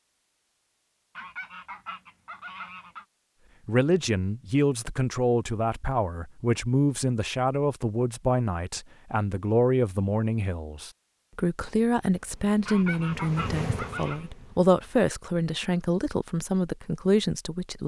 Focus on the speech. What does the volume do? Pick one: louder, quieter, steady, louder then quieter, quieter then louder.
steady.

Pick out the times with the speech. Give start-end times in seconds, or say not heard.
3.6-17.8.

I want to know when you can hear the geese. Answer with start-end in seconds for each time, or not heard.
1.1-3.0, 12.7-14.2.